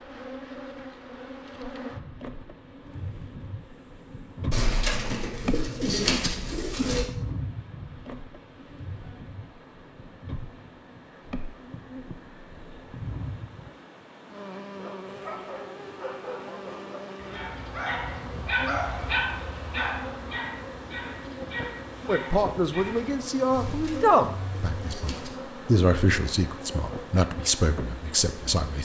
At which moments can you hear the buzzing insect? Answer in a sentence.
The buzzing insect can be heard from 0.0 to 28.6 s.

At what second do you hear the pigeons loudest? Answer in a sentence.
The volume of the pigeons peaks at 6 seconds.